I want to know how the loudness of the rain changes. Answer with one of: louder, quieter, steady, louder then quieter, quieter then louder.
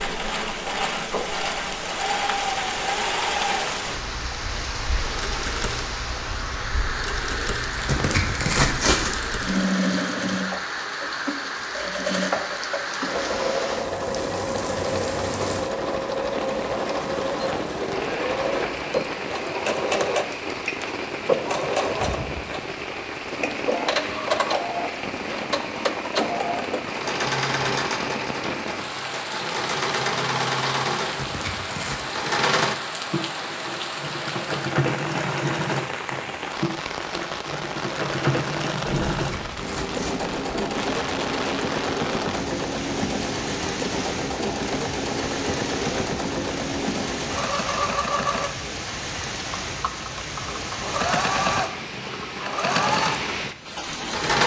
steady.